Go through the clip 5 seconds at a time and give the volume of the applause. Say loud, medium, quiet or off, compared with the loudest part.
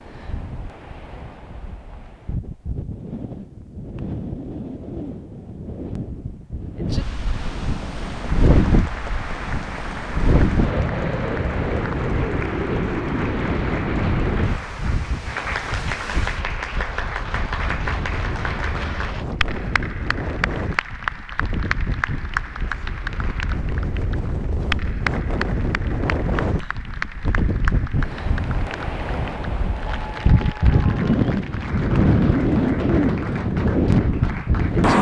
off, medium, loud, loud, loud, loud, medium.